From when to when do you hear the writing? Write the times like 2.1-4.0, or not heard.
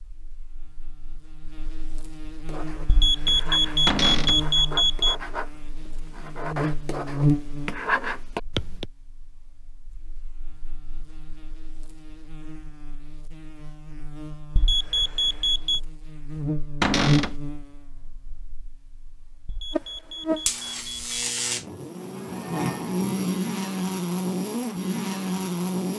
2.5-8.8.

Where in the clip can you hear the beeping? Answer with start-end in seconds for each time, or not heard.
2.9-5.2, 14.6-15.8, 19.4-21.1.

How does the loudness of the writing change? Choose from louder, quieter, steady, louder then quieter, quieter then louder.
louder.